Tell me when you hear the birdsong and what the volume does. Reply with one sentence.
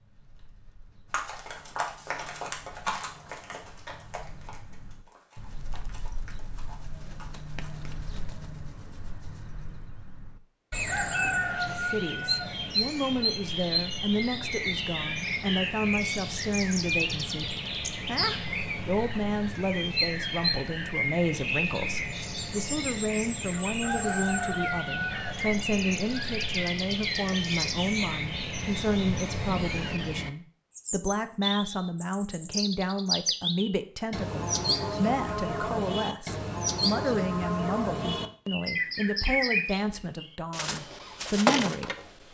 The birdsong can be heard from 0.0 to 42.2 s, getting louder.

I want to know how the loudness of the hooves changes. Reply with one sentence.
The loudness of the hooves goes down.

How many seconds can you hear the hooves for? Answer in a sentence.
You can hear the hooves for 7 seconds altogether.